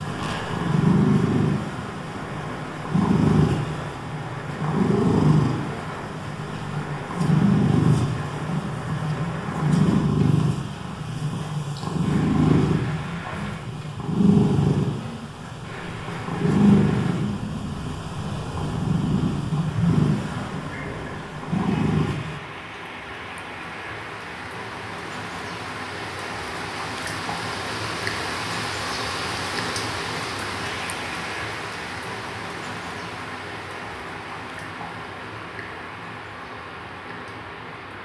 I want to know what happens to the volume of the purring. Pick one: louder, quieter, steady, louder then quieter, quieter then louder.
steady.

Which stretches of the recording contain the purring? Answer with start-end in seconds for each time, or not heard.
0.0-22.4.